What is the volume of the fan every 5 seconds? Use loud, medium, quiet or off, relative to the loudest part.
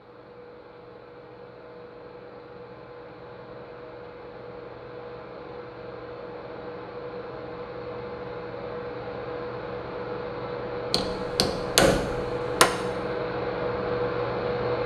quiet, medium, loud.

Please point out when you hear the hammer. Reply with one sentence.
You can hear the hammer from 10.9 to 12.7 s.